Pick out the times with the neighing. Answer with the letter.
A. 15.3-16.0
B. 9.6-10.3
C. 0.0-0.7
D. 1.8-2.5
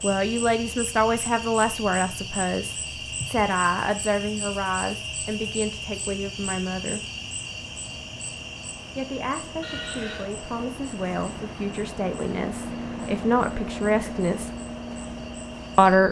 B.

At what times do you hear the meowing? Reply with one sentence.
You can't hear the meowing here.